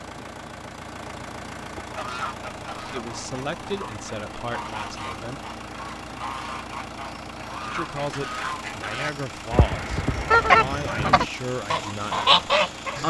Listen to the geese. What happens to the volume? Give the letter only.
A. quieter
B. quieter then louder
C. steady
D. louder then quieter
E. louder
E.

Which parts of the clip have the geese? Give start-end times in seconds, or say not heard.
1.8-13.0.